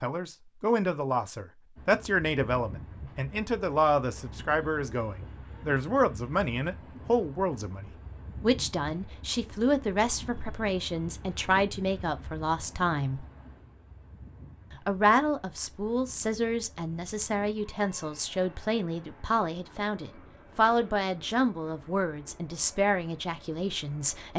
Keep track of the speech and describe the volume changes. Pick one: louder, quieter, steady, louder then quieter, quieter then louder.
steady.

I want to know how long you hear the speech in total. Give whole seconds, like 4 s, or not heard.
23 s.